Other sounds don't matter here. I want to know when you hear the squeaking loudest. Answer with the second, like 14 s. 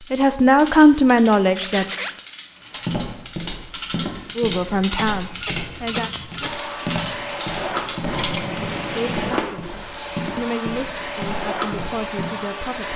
2 s.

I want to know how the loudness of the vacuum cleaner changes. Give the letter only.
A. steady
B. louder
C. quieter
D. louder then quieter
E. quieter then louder
A.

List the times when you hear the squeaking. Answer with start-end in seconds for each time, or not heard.
1.6-2.1, 4.8-6.6, 9.8-10.3.